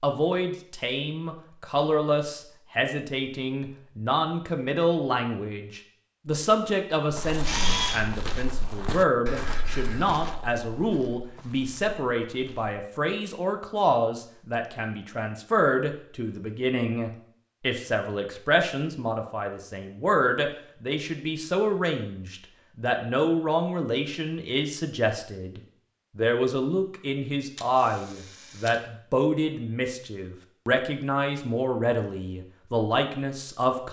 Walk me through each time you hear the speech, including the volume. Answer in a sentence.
You can hear the speech from 0.0 to 33.8 s, at a steady volume.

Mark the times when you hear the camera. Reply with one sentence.
The camera can be heard from 7.4 to 8.1 s and from 27.6 to 28.8 s.